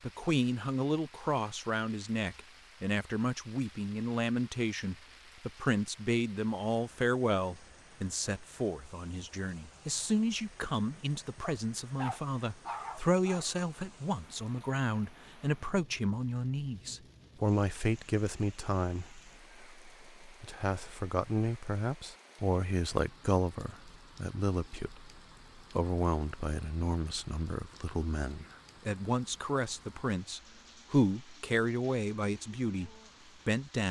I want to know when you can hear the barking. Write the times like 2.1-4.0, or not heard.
11.4-13.7.